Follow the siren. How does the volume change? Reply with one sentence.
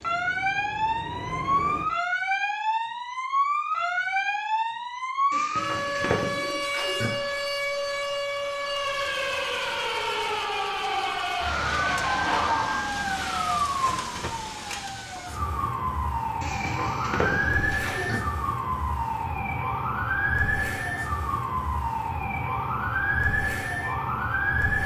The loudness of the siren stays about the same.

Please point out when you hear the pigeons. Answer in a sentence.
You can hear the pigeons from 5.3 to 7.1 s and from 16.4 to 18.2 s.